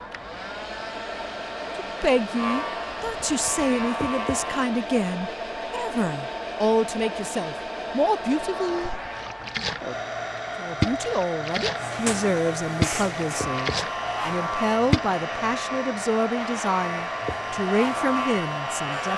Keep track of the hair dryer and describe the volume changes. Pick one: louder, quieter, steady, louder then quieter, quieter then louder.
steady.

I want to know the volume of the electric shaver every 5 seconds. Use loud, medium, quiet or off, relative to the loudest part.
loud, off, loud, loud.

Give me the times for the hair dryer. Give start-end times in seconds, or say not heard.
0.0-19.1.